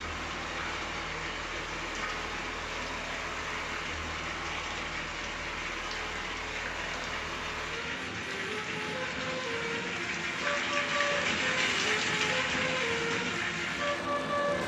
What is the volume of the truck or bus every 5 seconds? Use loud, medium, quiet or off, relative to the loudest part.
medium, medium, loud.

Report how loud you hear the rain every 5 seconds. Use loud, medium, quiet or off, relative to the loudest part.
medium, medium, loud.